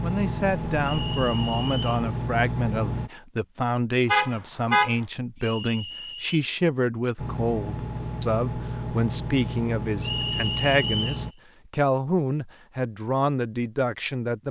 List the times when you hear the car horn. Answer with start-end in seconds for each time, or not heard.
4.0-5.0.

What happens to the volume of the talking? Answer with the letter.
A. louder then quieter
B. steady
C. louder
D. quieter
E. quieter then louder
B.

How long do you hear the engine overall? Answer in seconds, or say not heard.
7 s.